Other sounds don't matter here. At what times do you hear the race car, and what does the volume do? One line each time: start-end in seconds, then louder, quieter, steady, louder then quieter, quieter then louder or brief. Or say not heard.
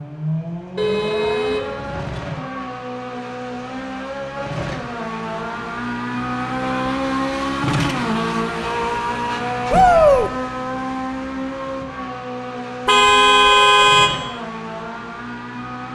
0.0-15.9 louder then quieter.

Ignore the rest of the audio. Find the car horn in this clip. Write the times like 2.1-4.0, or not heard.
0.8-2.1, 12.8-14.1.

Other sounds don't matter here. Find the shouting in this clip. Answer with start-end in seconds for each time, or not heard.
9.7-10.3.